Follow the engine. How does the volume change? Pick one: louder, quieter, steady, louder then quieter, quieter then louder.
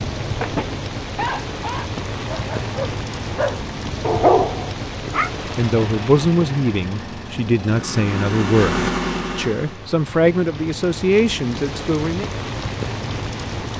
louder.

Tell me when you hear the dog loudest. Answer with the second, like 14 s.
4 s.